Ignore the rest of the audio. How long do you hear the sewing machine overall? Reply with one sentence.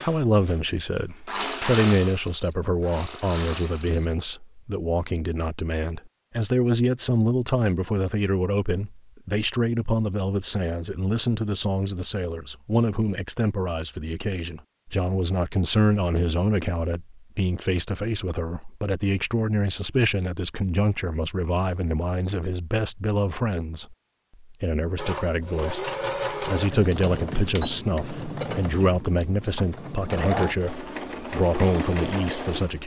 The sewing machine can be heard for 12 seconds in total.